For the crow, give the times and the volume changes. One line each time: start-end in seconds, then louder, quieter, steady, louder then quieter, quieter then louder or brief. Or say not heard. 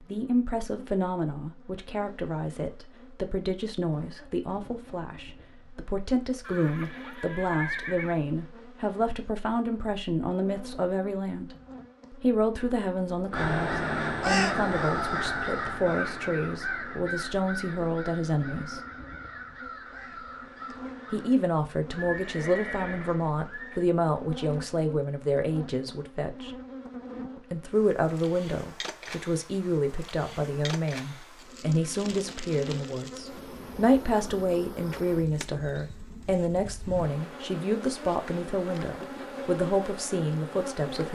13.3-21.4 quieter.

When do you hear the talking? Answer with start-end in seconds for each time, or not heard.
0.0-18.8, 21.1-26.6, 27.4-41.0.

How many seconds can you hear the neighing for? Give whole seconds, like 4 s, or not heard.
4 s.